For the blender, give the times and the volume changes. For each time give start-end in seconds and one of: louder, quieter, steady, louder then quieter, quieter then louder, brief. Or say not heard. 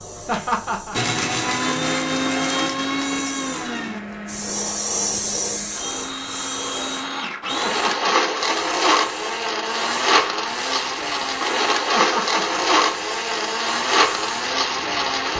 0.0-15.3 quieter then louder.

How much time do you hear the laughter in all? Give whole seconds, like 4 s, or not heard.
2 s.